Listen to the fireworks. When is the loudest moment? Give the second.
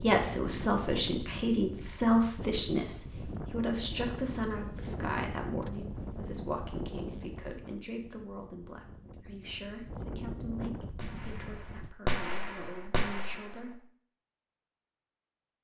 12 s.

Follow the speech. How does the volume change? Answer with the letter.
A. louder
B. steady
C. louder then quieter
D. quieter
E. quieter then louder
D.